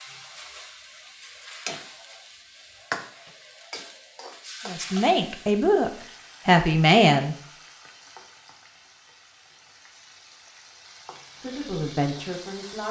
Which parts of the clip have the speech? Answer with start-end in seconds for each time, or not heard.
4.7-7.3, 11.3-12.8.